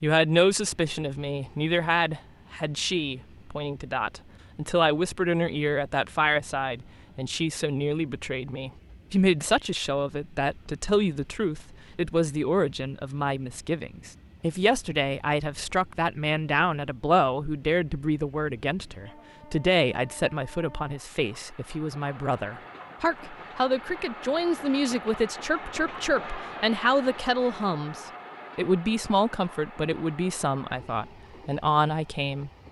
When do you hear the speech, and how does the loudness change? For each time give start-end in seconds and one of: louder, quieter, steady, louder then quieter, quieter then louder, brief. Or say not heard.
0.0-32.5 steady.